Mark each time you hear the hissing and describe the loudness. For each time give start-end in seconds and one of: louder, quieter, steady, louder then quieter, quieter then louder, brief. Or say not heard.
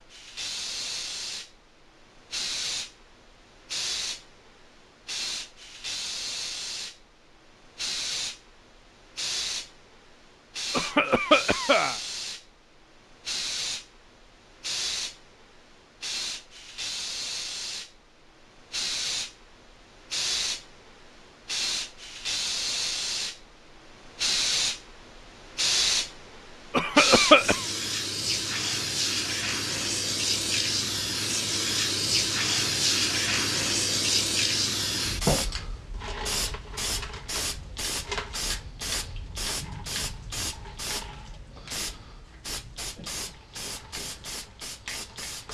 0.0-45.4 louder then quieter.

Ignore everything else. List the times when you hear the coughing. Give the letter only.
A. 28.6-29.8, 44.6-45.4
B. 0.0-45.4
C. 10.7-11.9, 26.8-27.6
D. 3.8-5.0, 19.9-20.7
C.